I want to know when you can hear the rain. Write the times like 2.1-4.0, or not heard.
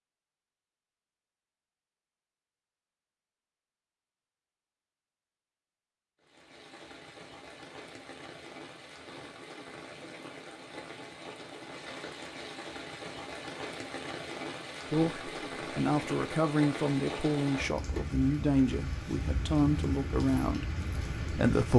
6.2-21.7.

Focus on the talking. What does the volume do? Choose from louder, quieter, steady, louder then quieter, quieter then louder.
steady.